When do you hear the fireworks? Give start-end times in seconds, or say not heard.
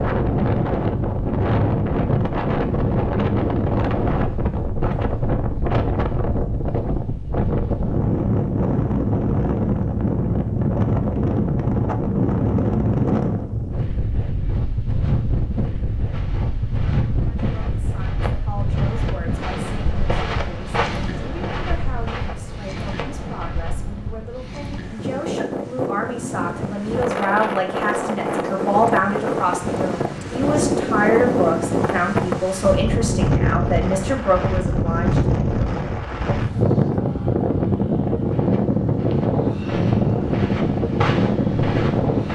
not heard.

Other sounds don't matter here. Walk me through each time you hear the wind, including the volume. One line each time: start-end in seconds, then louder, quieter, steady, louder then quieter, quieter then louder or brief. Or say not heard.
0.0-42.2 quieter then louder.